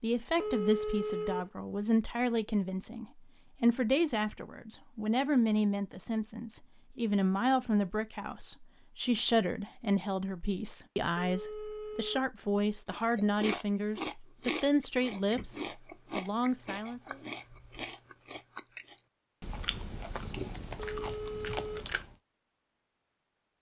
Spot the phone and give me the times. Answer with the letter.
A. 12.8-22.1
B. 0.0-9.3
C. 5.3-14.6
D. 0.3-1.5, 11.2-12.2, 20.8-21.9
D.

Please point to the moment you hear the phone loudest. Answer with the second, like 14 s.
1 s.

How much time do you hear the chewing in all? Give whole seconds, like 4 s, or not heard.
9 s.